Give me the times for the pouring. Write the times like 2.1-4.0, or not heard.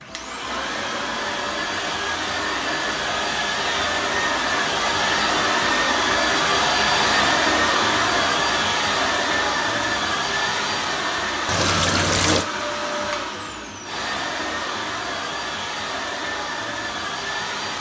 11.4-12.4.